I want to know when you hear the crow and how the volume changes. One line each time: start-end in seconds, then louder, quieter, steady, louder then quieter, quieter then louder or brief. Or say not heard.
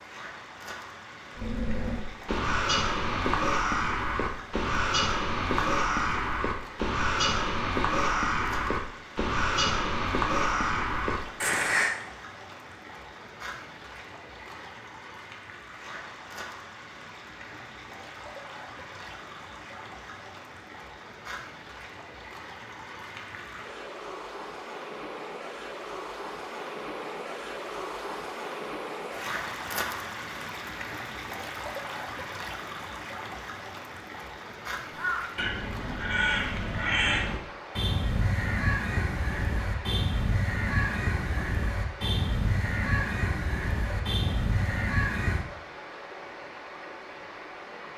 1.4-11.9 steady
34.9-45.5 steady.